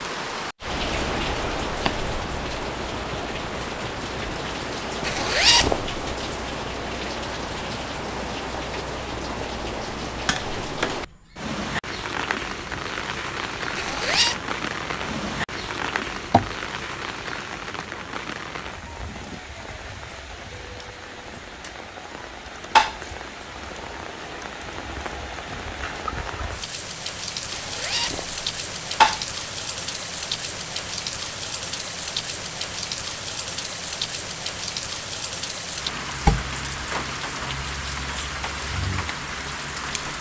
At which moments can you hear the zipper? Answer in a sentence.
You can hear the zipper from 5.0 to 6.0 s, from 13.8 to 14.4 s and from 27.5 to 28.4 s.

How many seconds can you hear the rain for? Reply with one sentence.
The rain can be heard for 40 seconds in total.